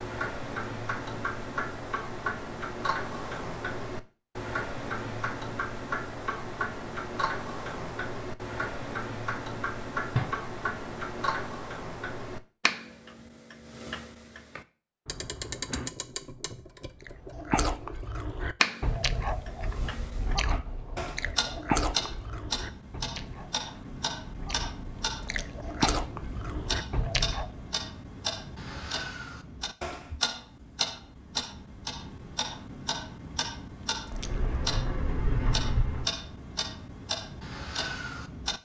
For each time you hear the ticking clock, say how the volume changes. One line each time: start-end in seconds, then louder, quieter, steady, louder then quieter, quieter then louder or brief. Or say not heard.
0.0-38.6 steady.